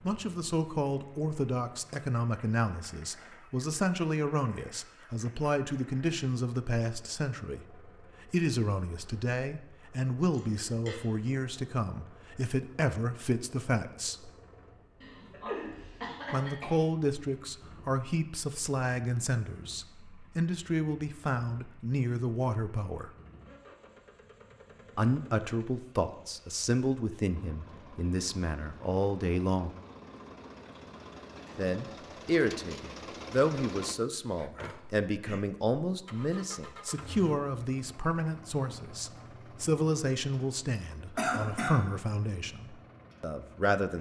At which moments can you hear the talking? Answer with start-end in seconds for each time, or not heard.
0.0-14.3, 16.3-23.1, 24.9-29.8, 31.6-43.9.